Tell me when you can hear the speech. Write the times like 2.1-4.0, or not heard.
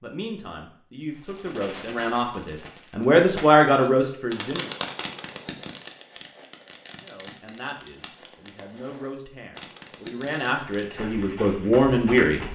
0.0-4.7, 7.0-12.4.